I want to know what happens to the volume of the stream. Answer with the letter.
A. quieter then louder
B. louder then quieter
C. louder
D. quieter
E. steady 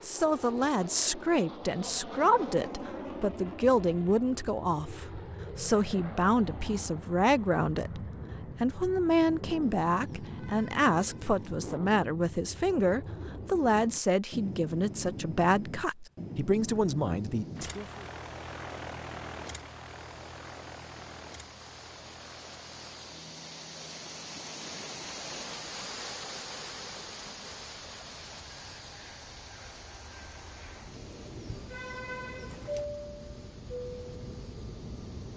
B.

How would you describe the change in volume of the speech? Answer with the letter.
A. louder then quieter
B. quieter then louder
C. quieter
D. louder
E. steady
E.